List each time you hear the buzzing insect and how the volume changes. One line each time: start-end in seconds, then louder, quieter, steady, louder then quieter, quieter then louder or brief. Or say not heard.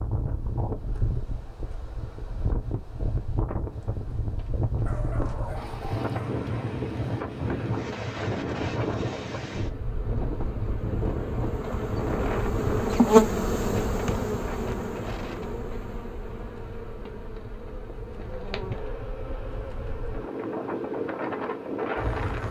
5.4-22.4 louder then quieter.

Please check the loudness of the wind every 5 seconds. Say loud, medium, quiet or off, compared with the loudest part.
loud, loud, loud, quiet, loud.